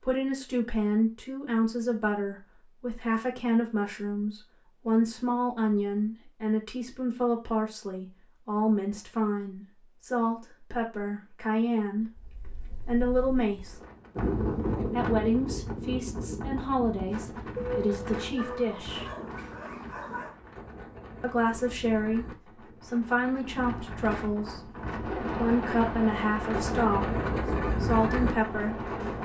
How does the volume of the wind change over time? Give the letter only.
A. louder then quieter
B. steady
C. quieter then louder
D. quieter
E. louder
C.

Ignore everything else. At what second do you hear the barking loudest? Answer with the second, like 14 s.
18 s.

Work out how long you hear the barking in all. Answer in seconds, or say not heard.
3 s.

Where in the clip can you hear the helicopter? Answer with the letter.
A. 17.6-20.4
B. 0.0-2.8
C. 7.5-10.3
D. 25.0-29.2
D.